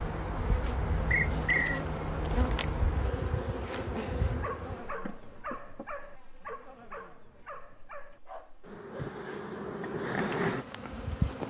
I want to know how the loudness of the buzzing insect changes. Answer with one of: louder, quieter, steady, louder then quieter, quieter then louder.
quieter then louder.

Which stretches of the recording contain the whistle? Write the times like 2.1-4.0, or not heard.
1.1-1.9.